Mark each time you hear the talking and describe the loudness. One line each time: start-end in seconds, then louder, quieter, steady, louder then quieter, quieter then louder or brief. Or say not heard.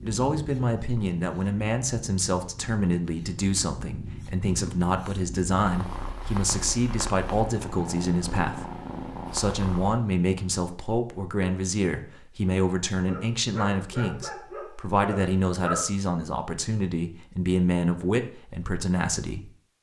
0.0-19.5 steady.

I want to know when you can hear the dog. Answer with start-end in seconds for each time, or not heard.
12.9-15.9.